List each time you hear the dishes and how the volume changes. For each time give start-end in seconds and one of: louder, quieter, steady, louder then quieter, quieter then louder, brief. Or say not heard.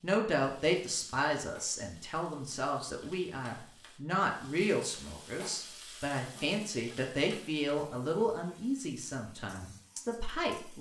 not heard.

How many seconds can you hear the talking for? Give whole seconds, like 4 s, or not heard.
11 s.